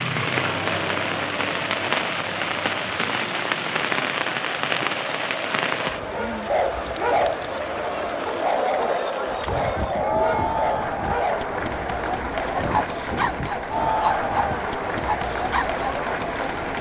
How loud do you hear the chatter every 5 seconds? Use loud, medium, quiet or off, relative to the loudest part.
medium, loud, loud, loud.